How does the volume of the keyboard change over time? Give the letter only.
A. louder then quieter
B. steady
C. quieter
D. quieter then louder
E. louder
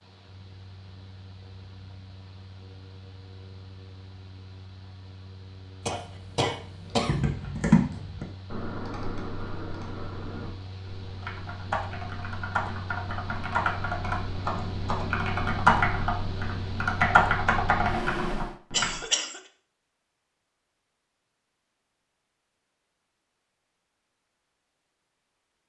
D.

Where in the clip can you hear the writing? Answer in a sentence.
You can't hear the writing here.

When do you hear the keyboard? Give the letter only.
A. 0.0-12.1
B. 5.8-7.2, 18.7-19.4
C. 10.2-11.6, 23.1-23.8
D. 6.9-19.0
D.